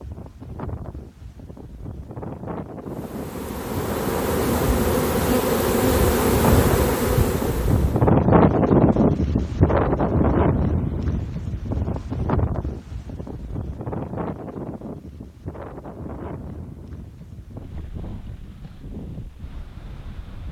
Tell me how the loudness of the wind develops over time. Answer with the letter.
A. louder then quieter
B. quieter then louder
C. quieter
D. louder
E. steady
A.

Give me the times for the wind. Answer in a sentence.
You can hear the wind from 0.0 to 20.4 s.